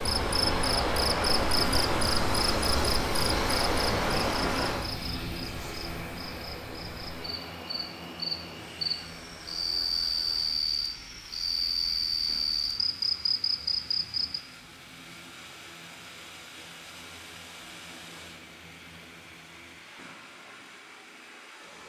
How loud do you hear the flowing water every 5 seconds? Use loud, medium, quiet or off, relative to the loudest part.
loud, quiet, quiet, quiet, quiet.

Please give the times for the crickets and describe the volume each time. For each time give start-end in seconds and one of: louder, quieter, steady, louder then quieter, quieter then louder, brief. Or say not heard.
0.0-14.4 quieter then louder.